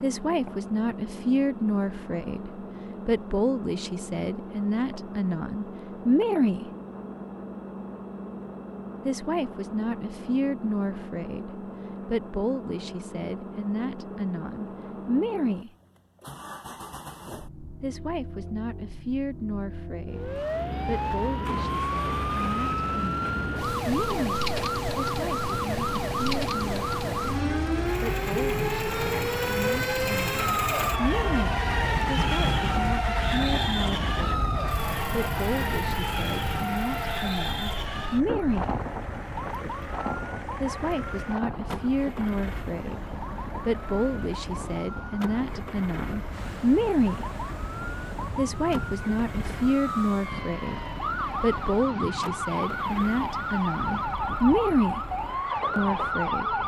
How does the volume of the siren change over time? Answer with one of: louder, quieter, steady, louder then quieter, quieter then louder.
quieter then louder.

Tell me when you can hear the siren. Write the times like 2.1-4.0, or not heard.
20.1-56.6.